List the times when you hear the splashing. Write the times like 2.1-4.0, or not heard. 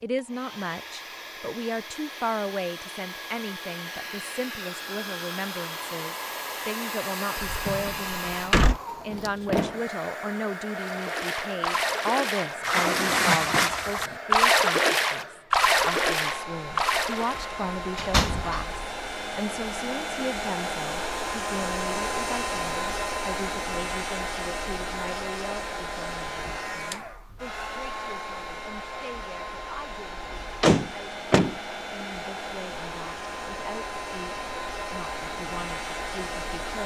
10.8-17.5.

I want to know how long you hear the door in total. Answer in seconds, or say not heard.
4 s.